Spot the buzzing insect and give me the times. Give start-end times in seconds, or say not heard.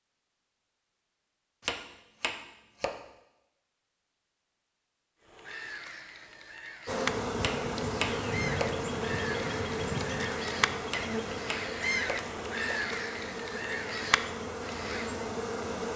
6.8-15.9.